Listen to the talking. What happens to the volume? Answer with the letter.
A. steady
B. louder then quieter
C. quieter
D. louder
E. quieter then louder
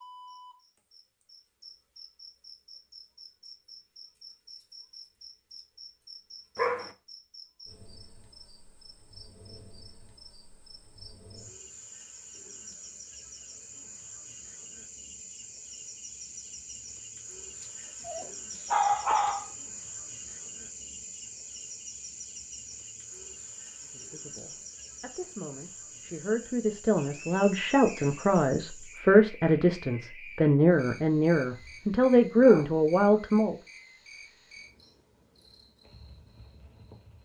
D.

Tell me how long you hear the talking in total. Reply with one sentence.
The talking can be heard for 10 seconds in total.